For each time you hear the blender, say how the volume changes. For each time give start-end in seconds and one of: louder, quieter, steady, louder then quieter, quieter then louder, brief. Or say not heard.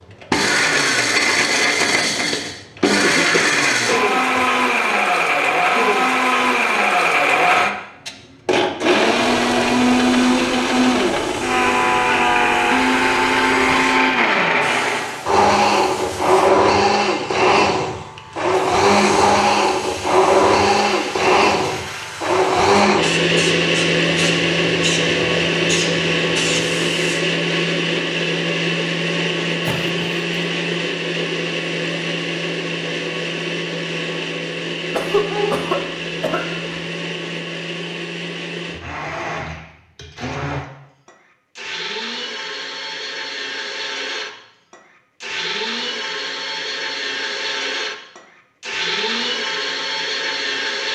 0.1-50.9 quieter.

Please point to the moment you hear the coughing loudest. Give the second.
35 s.